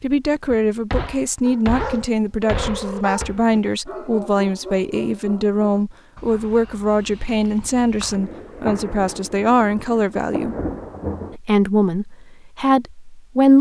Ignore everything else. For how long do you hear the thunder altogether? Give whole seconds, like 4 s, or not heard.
3 s.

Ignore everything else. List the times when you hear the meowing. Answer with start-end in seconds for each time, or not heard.
2.4-3.0.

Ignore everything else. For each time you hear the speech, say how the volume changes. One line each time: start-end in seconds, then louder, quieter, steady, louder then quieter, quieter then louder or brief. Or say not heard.
0.0-10.6 steady
11.3-13.5 brief.